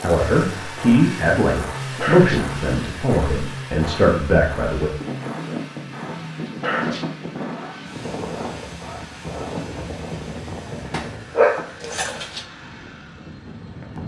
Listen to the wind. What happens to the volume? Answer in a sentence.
The loudness of the wind goes down.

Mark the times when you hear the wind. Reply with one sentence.
You can hear the wind from 5.0 to 14.0 s.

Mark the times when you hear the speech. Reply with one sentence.
You can hear the speech from 0.0 to 4.9 s.